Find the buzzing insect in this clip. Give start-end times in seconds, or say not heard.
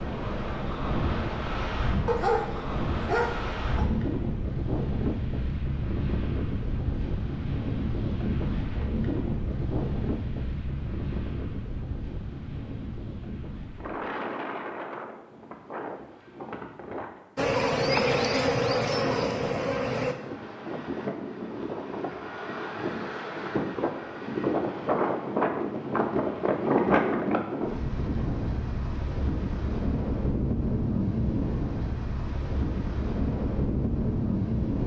17.4-20.1.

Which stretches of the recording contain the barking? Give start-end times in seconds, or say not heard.
2.0-3.9.